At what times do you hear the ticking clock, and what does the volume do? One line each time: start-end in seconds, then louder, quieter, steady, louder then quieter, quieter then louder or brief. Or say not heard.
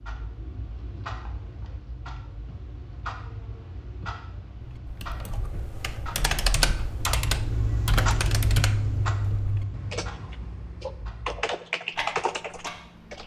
0.0-13.2 louder then quieter.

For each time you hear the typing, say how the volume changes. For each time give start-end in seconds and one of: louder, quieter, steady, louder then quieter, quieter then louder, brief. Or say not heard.
4.7-13.2 quieter then louder.